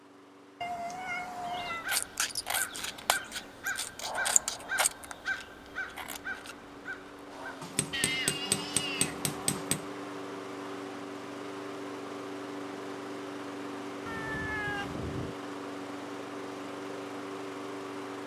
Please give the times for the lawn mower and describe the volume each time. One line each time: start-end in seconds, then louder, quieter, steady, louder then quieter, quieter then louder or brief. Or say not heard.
0.0-18.2 louder.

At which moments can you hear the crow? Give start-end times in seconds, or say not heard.
1.4-7.8.